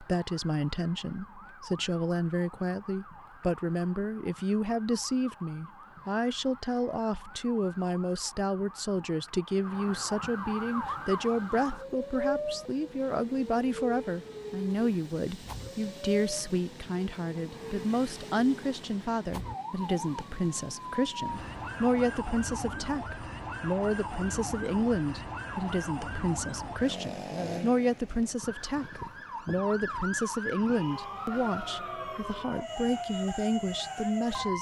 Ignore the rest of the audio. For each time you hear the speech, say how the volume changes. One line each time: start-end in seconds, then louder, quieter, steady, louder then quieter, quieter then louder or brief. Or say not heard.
0.0-34.5 steady.